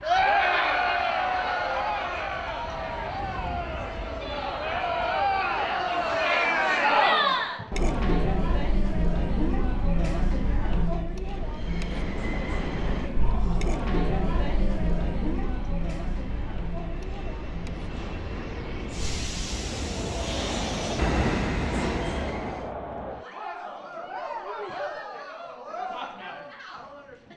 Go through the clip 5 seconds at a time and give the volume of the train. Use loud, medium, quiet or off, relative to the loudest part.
quiet, quiet, medium, medium, loud, off.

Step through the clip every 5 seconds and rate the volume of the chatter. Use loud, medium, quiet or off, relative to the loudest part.
loud, loud, medium, medium, medium, quiet.